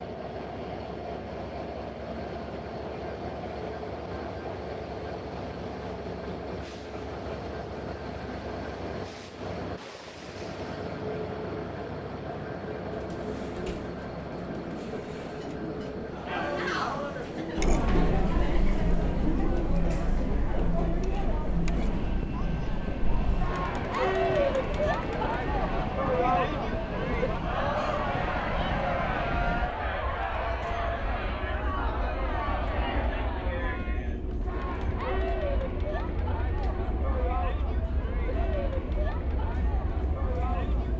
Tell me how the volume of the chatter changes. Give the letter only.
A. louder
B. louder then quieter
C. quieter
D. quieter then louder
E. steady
C.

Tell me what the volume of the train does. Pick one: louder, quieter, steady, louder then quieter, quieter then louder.
steady.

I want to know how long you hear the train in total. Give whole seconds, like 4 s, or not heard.
41 s.